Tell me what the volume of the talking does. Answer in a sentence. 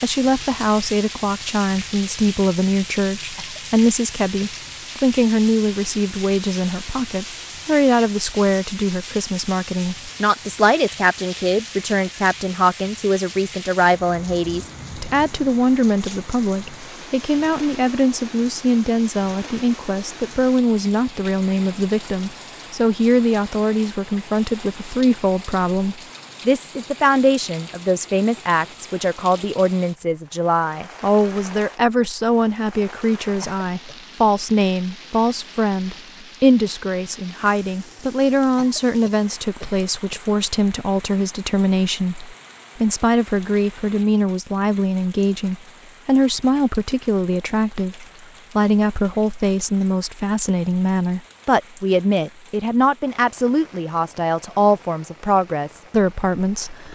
The loudness of the talking stays about the same.